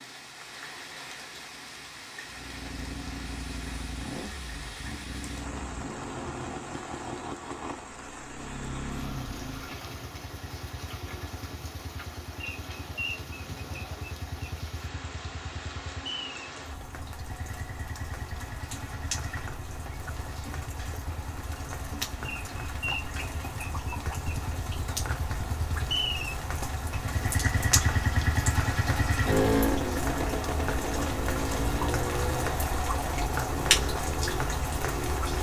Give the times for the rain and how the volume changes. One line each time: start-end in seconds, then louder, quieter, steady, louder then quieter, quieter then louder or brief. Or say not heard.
0.0-35.3 louder.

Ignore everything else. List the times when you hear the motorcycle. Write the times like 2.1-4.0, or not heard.
2.2-35.3.